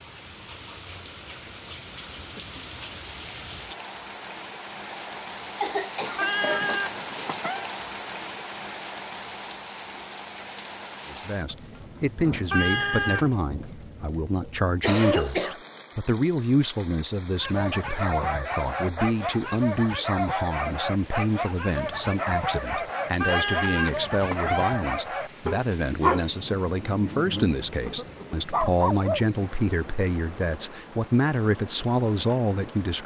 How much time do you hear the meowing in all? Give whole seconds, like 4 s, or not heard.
4 s.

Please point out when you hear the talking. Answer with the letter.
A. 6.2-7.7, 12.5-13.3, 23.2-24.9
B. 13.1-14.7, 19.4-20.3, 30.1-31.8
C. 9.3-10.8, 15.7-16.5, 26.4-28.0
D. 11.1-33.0
D.